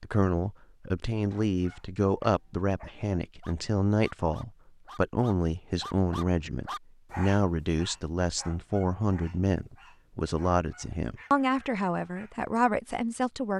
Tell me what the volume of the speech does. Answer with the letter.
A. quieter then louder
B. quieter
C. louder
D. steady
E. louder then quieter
D.